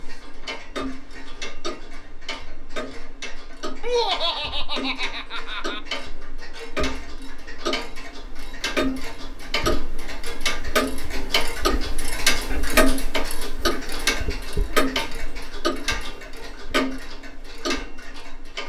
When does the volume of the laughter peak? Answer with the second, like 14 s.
4 s.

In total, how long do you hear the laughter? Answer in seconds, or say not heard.
2 s.